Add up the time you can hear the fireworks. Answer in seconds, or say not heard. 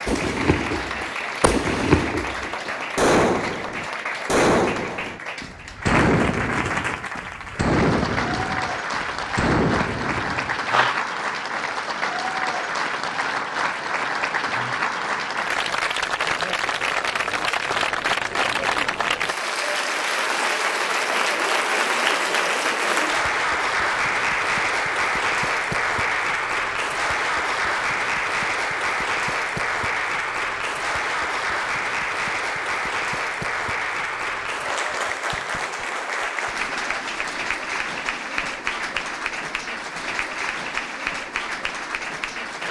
11 s.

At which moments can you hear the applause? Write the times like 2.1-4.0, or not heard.
0.0-42.6.